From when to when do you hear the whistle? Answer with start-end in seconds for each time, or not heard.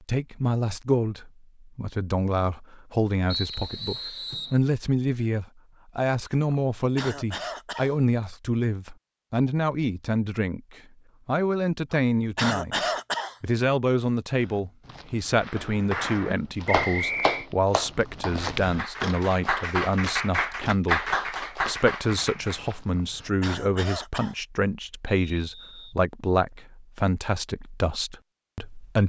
3.3-4.6, 16.6-17.4, 25.1-25.9.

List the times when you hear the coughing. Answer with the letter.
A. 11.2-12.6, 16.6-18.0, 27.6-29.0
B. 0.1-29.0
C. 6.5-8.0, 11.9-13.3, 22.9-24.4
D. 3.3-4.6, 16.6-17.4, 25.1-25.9
C.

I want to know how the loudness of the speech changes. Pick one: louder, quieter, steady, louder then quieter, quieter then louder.
steady.